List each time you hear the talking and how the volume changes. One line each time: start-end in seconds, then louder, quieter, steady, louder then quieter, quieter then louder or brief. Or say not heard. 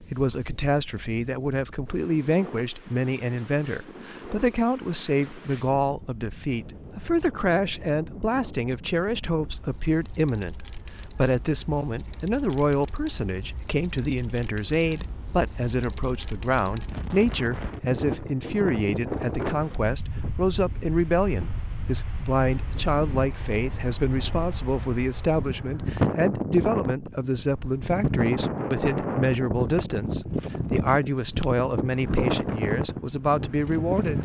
0.0-34.2 steady.